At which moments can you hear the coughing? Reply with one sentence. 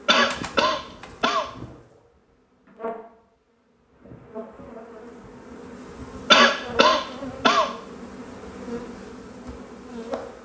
The coughing can be heard from 0.1 to 1.5 s and from 6.3 to 7.7 s.